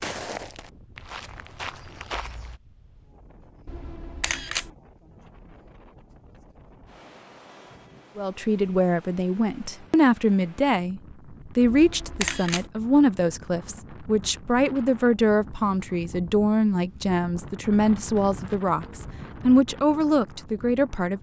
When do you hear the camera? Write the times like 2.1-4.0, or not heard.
3.6-4.7, 11.6-12.7.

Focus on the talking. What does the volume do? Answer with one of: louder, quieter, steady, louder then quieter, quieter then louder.
steady.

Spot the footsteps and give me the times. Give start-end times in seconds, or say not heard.
0.0-2.6.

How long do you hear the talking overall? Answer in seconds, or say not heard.
13 s.